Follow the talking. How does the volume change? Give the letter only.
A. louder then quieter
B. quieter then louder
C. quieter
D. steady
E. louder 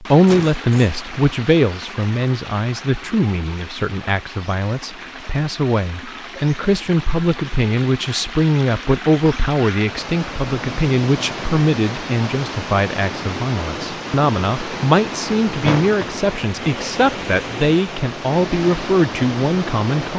D.